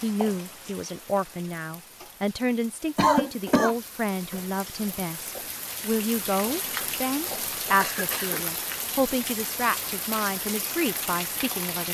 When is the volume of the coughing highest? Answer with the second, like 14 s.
3 s.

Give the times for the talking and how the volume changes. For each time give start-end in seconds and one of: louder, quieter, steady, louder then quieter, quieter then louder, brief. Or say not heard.
0.0-11.8 steady.